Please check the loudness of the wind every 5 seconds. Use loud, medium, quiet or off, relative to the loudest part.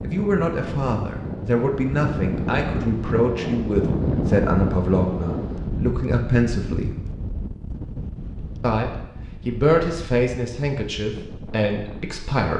loud, medium, quiet.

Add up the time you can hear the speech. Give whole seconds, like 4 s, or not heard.
11 s.